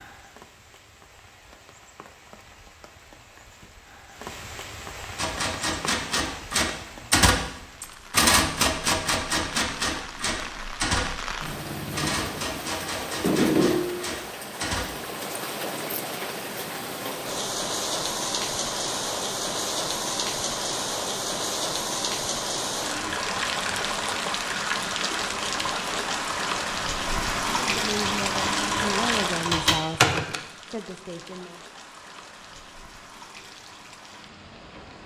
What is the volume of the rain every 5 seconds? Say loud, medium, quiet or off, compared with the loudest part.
quiet, quiet, loud, loud, loud, loud, quiet.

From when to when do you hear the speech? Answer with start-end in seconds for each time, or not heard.
27.6-31.6.